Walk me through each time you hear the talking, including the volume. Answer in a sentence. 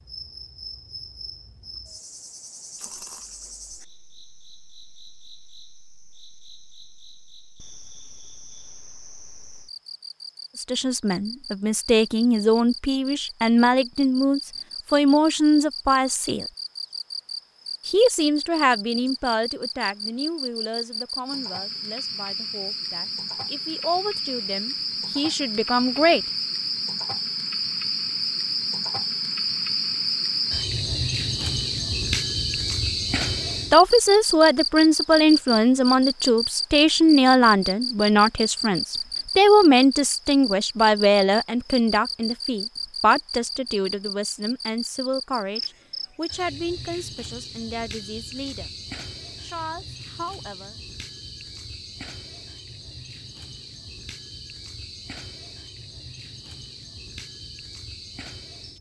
The talking can be heard from 10.6 to 16.4 s, getting louder; from 17.9 to 26.2 s, getting quieter then louder; from 33.7 to 48.7 s, getting quieter; and briefly from 49.4 to 50.8 s.